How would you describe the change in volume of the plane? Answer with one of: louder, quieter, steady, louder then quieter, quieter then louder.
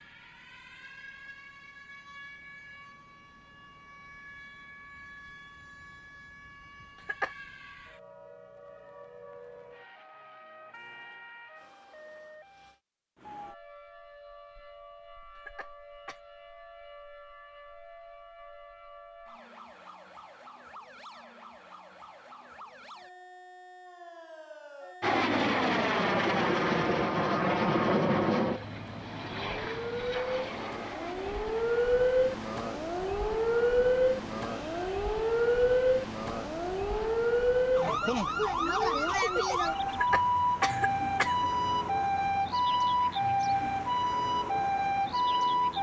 quieter.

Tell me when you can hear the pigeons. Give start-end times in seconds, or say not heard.
not heard.